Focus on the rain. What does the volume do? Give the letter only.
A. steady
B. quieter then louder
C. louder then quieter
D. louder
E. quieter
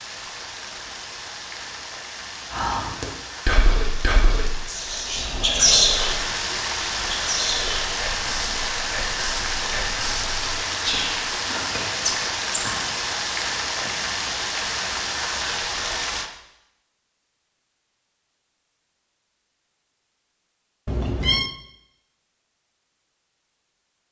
D.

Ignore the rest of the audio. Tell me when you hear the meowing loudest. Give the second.
21 s.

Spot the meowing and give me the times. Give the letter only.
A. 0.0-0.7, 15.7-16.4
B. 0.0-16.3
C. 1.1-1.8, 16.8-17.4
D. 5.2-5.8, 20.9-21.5
D.